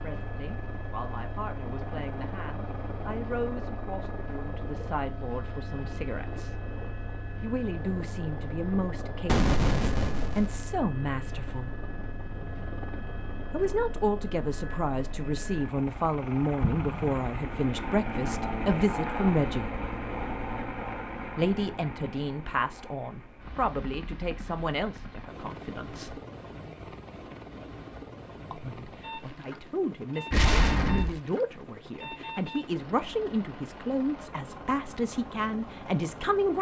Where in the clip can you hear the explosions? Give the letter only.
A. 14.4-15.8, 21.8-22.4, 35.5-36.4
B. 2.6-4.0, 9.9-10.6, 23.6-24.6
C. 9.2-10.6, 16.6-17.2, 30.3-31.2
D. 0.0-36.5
C.